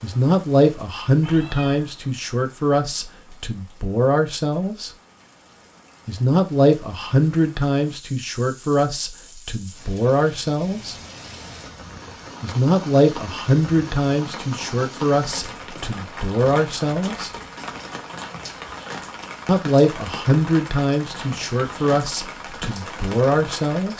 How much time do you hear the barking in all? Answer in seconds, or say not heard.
not heard.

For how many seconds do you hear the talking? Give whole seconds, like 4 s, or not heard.
19 s.